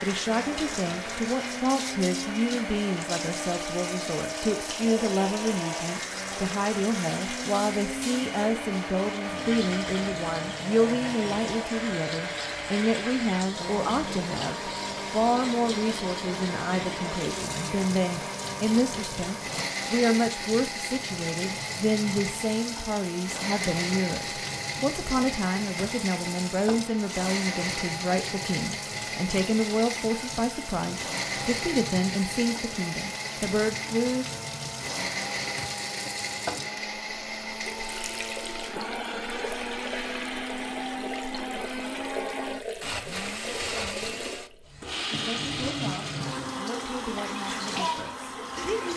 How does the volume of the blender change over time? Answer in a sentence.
The loudness of the blender stays about the same.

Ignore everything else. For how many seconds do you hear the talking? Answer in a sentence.
You can hear the talking for 38 seconds altogether.